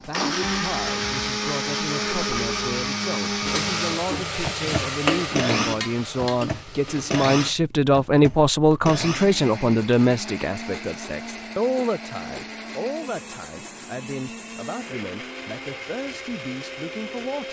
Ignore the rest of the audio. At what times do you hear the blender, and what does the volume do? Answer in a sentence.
The blender can be heard from 0.0 to 17.4 s, getting quieter.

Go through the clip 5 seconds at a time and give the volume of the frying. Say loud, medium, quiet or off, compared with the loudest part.
loud, loud, off, off.